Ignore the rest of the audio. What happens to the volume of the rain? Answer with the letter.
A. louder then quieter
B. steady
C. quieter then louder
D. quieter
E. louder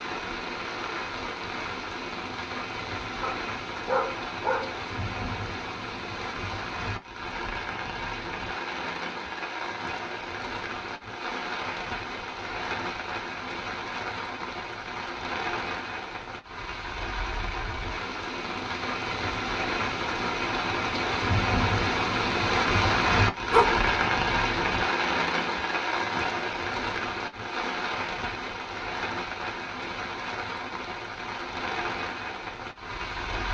A.